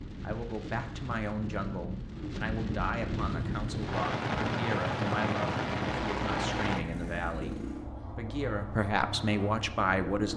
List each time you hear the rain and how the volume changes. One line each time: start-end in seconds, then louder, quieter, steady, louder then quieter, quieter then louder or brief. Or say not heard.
0.0-6.8 louder.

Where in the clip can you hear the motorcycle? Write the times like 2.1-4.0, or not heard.
3.2-10.3.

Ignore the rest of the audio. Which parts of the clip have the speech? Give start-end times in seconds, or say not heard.
0.2-10.3.